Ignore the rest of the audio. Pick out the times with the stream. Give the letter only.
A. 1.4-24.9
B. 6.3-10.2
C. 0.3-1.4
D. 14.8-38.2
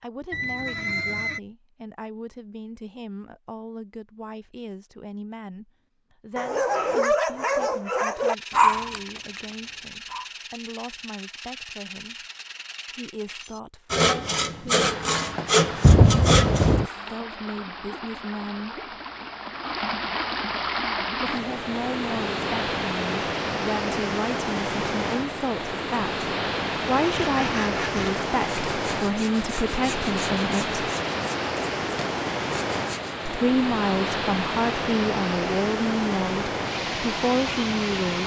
D.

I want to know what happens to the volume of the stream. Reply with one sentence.
The volume of the stream goes up.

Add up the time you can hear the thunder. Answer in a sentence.
The thunder can be heard for 2 seconds in total.